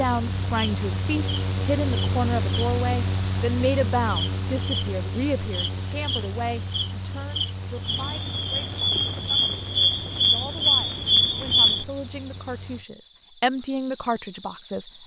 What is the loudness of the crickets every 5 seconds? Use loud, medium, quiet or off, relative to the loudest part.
medium, medium, loud.